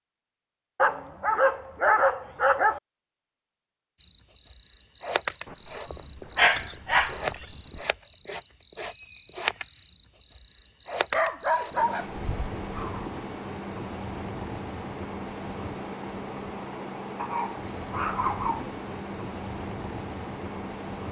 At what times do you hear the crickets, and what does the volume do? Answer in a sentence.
You can hear the crickets from 4.0 to 21.0 s, at a steady volume.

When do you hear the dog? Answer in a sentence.
You can hear the dog from 0.8 to 2.8 s, from 5.5 to 7.8 s, from 11.1 to 13.1 s and from 17.1 to 18.8 s.